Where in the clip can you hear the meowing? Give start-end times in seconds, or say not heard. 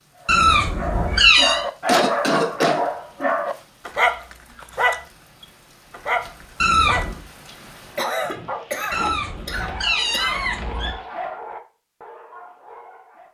0.2-1.6, 6.6-7.2, 8.9-10.9.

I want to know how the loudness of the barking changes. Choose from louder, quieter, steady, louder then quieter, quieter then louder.
quieter.